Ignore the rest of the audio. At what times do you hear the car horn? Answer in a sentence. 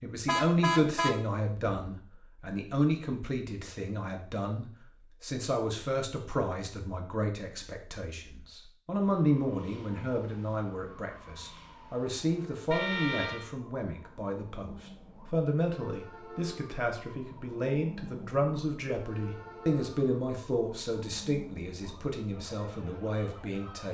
The car horn can be heard from 0.2 to 1.8 s and from 12.7 to 13.5 s.